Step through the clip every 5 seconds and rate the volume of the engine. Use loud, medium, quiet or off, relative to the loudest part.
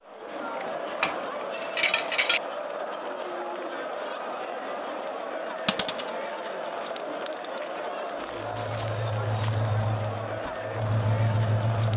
off, loud, loud.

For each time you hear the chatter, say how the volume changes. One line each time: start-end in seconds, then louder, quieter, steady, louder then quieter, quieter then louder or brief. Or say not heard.
0.0-11.9 steady.